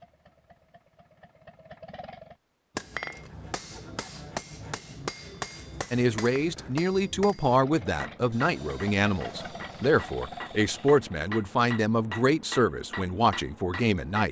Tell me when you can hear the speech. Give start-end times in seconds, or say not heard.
5.9-14.2.